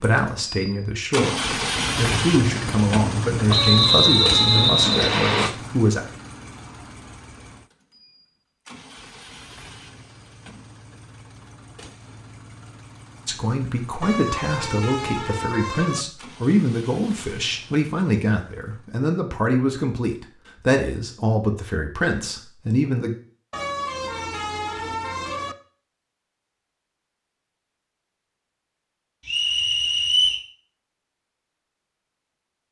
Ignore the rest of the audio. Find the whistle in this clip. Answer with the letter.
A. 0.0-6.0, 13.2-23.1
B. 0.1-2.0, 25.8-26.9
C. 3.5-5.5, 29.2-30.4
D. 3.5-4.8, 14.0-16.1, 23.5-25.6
C.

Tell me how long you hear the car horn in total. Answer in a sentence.
The car horn can be heard for 5 seconds in total.